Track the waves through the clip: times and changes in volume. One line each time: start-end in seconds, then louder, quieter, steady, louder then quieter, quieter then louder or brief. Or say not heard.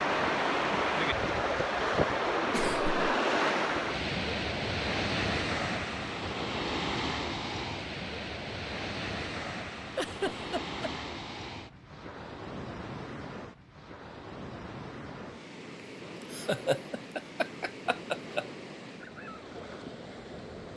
0.0-20.7 quieter.